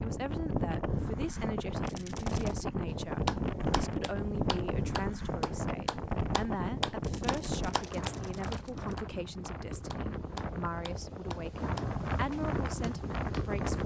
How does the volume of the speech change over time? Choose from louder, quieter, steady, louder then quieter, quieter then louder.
steady.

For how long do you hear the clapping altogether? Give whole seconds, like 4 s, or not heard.
10 s.